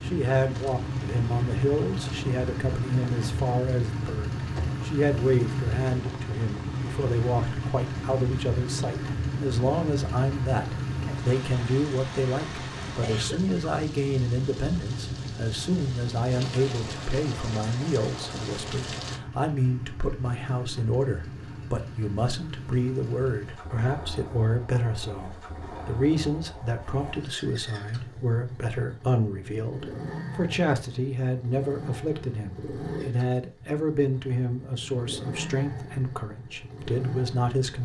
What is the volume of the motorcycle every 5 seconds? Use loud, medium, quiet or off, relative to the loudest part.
loud, loud, loud, medium, medium, medium, medium, medium.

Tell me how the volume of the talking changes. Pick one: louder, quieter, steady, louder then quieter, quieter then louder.
steady.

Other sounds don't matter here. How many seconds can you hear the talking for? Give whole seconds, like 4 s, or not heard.
38 s.